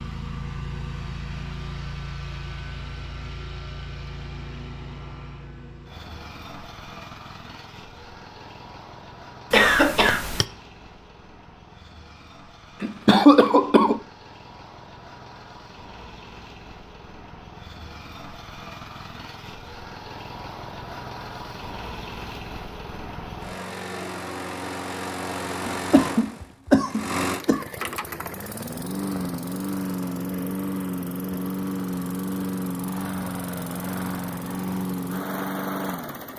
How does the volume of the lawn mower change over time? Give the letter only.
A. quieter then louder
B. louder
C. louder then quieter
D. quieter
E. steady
A.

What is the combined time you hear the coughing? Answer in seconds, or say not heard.
4 s.